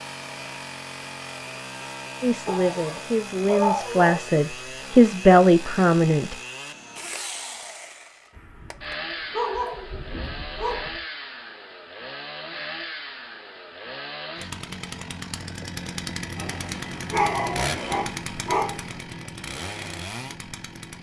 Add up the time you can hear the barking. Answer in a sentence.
You can hear the barking for 7 seconds altogether.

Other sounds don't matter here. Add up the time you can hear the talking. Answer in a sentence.
The talking can be heard for 4 seconds in total.